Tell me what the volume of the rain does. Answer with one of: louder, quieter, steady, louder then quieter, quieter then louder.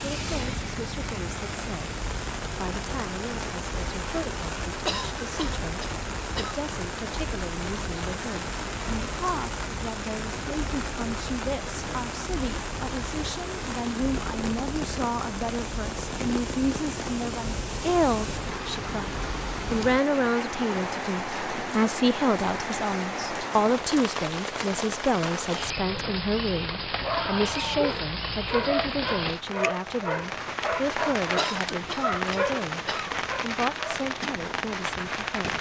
steady.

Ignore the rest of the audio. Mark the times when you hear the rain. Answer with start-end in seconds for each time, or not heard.
0.0-35.5.